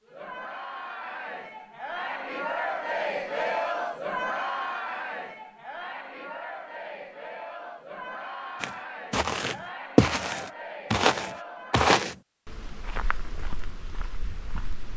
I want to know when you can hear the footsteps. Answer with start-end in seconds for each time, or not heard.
8.6-14.9.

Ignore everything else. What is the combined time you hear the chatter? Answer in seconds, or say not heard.
12 s.